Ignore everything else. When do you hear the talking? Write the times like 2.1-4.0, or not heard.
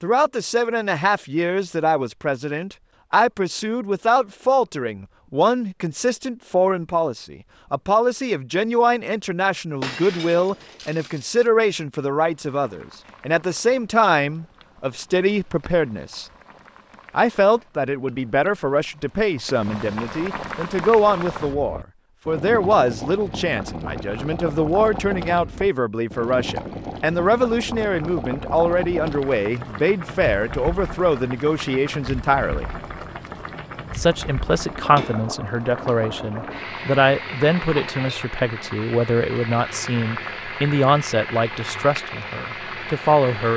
0.0-16.2, 17.1-32.6, 34.0-43.5.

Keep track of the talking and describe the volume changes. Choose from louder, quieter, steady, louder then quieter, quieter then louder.
steady.